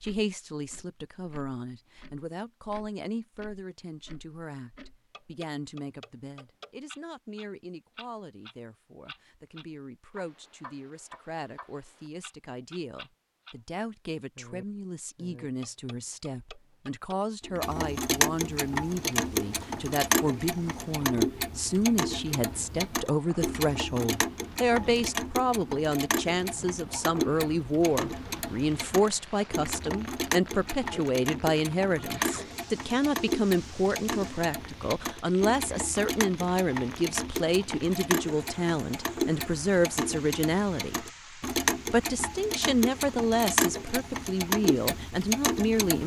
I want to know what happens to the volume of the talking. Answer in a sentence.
The volume of the talking goes up.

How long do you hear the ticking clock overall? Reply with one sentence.
You can hear the ticking clock for 45 seconds altogether.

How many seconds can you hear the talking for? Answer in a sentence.
The talking can be heard for 46 seconds in total.